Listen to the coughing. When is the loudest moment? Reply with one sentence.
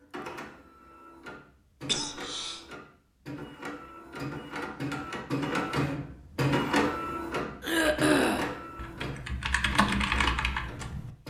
The volume of the coughing peaks at 8 seconds.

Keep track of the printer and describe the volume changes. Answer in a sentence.
The volume of the printer goes up, then down.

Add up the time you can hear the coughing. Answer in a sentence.
The coughing can be heard for 2 seconds in total.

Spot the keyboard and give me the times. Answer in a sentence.
The keyboard can be heard from 7.7 to 11.1 s.